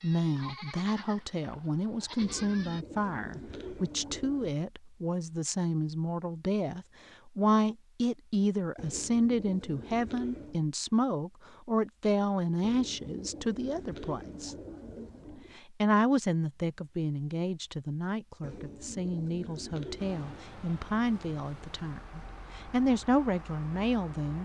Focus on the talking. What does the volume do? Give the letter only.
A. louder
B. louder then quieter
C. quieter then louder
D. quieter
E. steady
E.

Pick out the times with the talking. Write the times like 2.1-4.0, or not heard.
0.0-14.6, 15.6-24.4.